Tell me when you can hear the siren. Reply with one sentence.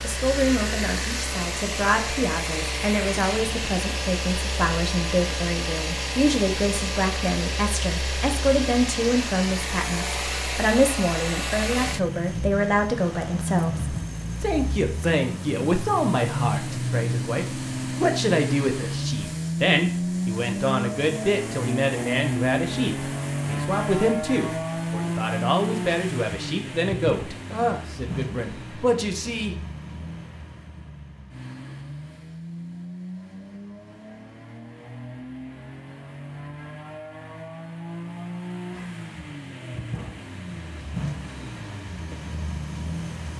The siren can't be heard in this clip.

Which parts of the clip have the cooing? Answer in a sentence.
You can't hear the cooing here.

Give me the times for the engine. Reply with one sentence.
You can hear the engine from 0.0 to 43.3 s.